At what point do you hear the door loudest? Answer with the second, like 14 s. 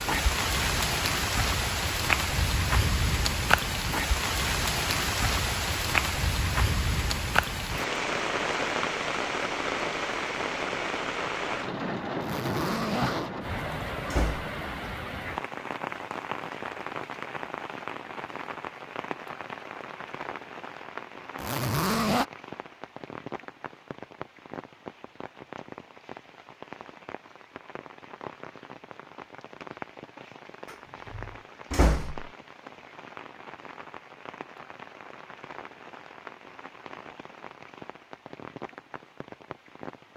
32 s.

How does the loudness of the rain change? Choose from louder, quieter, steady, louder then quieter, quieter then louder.
quieter.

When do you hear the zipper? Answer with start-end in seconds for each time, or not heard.
12.2-13.3, 21.4-22.2.